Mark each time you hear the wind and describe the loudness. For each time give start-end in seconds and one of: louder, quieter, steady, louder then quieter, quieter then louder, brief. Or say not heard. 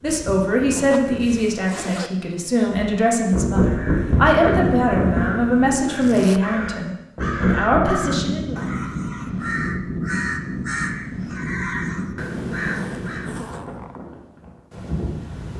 0.0-15.5 louder then quieter.